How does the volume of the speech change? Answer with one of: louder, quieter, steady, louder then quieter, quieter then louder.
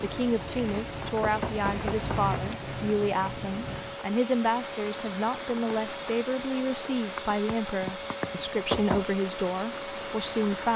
steady.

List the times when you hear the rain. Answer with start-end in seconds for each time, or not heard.
0.0-10.7.